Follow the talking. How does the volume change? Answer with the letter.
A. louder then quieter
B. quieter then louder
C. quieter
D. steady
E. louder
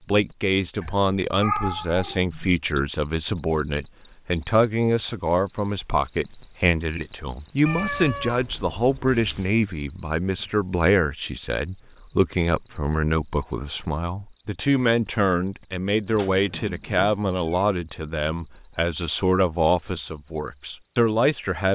D.